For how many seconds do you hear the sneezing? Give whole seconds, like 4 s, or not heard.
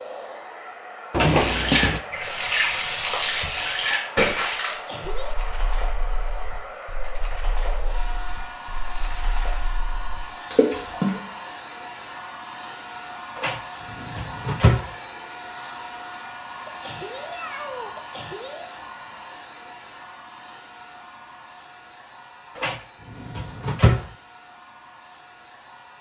3 s.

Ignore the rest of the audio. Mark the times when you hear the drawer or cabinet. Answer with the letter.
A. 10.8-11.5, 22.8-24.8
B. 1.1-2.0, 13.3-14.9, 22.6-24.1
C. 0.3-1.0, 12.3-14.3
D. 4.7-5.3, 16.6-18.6
B.